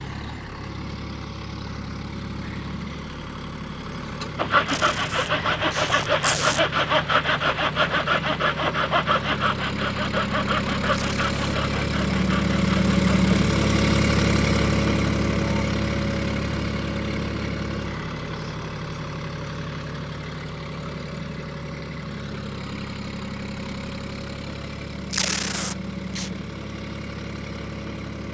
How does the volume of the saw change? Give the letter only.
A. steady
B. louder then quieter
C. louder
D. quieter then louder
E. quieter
E.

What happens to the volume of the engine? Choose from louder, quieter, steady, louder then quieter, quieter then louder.
louder then quieter.